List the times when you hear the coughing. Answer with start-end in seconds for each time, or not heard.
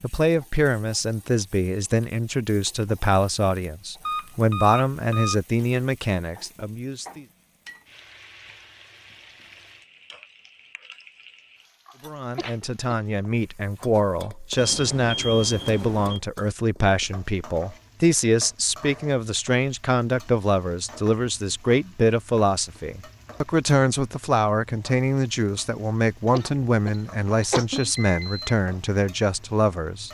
12.3-12.9, 26.3-27.9.